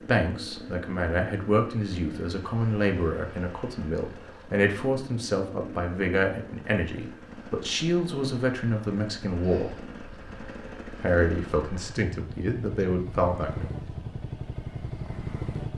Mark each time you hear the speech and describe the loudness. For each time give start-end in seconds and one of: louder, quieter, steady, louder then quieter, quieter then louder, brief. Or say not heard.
0.0-9.9 steady
10.9-13.7 brief.